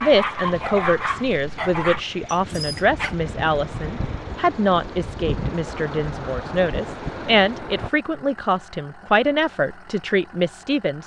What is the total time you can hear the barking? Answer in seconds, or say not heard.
3 s.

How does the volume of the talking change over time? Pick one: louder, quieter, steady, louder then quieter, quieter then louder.
steady.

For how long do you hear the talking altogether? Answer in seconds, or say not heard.
11 s.